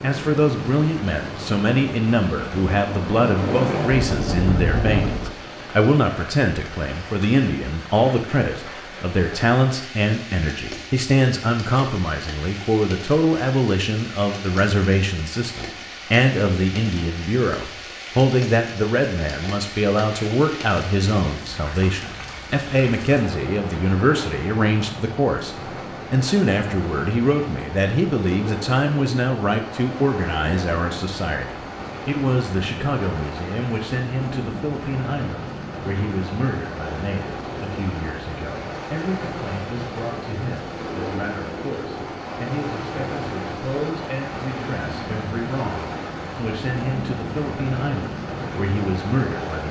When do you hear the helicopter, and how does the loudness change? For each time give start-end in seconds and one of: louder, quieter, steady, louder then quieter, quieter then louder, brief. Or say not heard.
0.0-5.3 louder.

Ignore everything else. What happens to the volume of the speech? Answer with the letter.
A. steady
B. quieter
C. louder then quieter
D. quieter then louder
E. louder
B.